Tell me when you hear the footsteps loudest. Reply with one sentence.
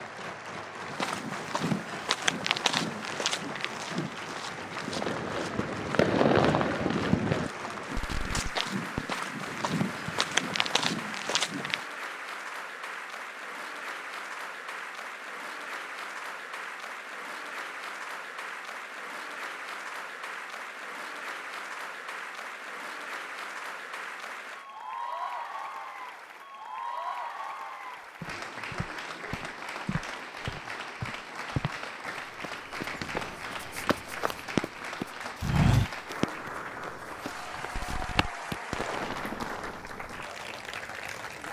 The volume of the footsteps peaks at 36 seconds.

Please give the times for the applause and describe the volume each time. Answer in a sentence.
The applause can be heard from 0.0 to 41.4 s, at a steady volume.